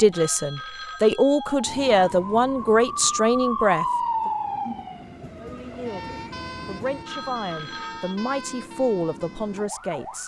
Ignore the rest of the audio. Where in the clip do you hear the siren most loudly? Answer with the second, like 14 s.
4 s.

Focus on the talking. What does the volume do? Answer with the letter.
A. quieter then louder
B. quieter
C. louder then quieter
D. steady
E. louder
B.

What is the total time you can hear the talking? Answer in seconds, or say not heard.
9 s.